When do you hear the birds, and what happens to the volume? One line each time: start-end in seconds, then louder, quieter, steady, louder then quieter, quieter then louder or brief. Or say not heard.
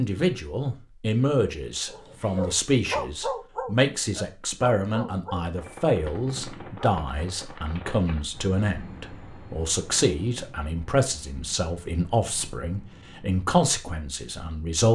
not heard.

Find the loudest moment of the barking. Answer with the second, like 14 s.
3 s.